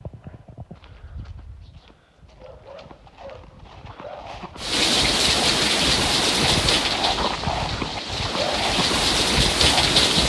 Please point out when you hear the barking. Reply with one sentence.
You can't hear the barking here.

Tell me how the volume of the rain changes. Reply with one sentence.
The loudness of the rain goes down, then up.